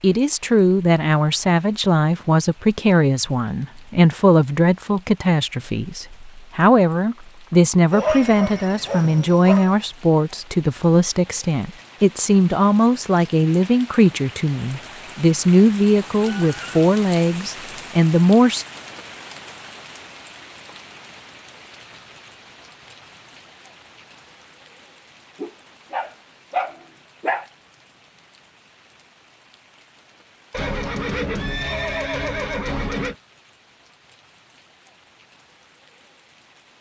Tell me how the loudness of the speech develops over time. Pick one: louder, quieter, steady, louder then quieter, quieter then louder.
steady.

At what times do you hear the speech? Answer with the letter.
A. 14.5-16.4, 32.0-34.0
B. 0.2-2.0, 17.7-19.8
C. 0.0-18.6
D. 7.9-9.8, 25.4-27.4
C.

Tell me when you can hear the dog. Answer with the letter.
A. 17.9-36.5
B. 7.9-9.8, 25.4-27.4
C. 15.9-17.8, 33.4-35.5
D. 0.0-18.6
B.